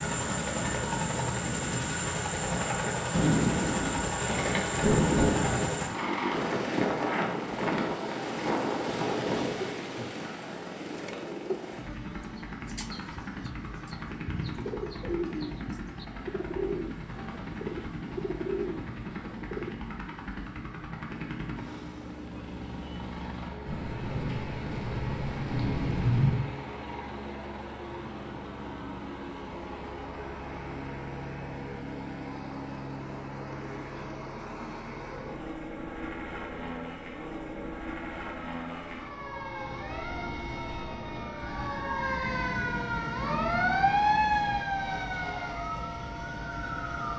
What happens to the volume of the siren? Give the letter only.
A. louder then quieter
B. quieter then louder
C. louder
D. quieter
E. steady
A.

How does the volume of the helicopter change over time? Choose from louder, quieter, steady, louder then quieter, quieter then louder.
quieter.